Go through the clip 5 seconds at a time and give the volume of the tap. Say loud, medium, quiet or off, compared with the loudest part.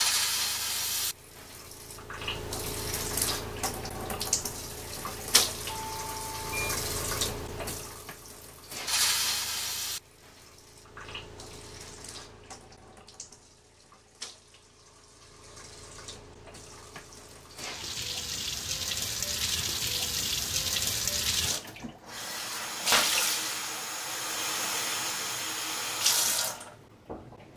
loud, loud, quiet, medium, loud, loud.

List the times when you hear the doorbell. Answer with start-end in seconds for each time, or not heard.
5.7-6.8.